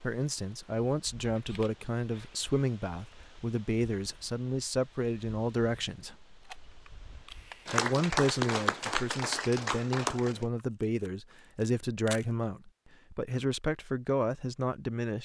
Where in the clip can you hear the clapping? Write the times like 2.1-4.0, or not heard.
7.7-10.4.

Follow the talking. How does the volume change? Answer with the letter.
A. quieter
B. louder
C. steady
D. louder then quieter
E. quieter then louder
C.